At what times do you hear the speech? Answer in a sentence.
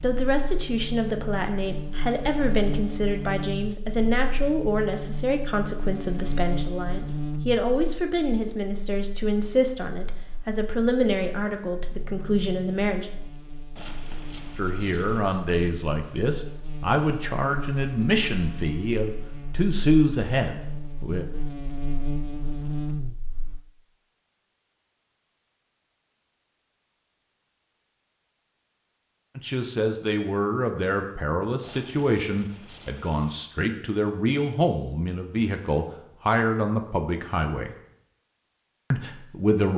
You can hear the speech from 0.0 to 13.1 s, from 14.6 to 21.2 s, from 29.4 to 37.7 s and from 38.9 to 39.7 s.